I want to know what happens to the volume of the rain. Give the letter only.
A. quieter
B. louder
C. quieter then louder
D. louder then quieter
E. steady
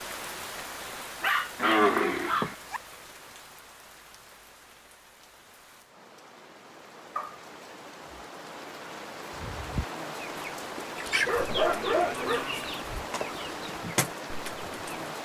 C.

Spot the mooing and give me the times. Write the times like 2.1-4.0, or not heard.
1.6-2.5, 11.1-12.8.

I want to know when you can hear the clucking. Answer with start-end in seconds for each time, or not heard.
9.3-15.1.